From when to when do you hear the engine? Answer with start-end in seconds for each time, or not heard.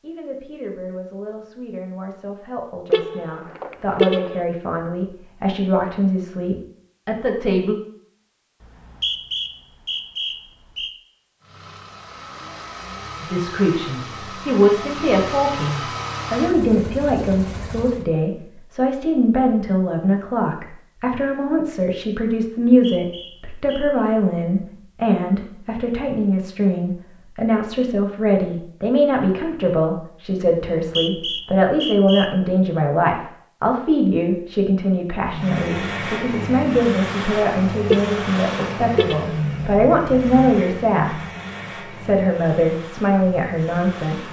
11.4-18.1, 35.2-44.2.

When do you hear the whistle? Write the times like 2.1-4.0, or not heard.
8.6-10.9, 22.6-24.0, 30.8-32.3.